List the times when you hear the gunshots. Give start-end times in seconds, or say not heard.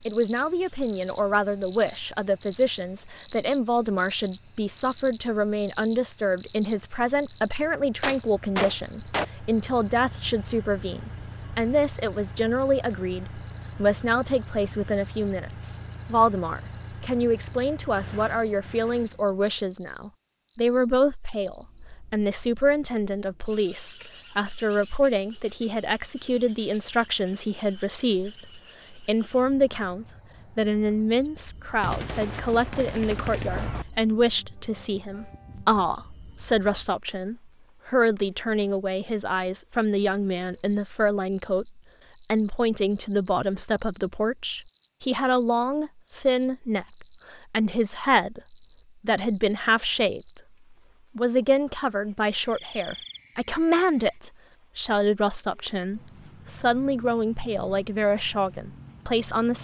8.0-9.2, 31.8-33.9.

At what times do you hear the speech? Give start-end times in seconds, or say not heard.
0.1-50.4, 51.1-59.5.